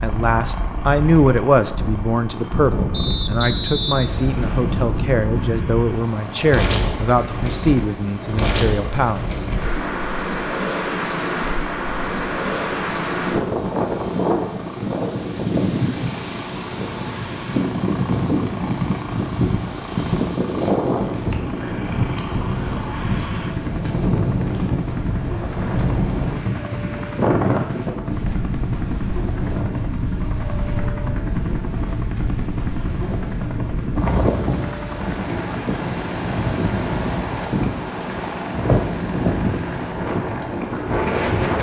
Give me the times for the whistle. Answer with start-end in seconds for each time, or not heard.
2.9-4.8.